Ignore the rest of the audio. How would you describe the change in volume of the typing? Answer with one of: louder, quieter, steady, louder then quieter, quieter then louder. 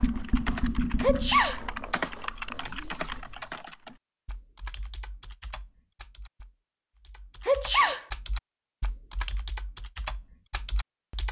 quieter then louder.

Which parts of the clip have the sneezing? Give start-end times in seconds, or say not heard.
1.0-1.6, 7.5-8.1.